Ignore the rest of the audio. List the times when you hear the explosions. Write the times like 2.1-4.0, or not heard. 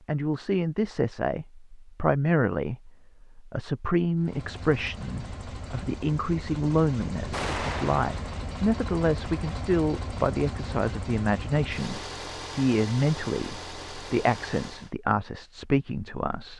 7.3-8.3.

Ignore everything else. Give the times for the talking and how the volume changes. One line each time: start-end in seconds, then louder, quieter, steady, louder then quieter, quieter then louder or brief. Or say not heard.
0.1-16.5 steady.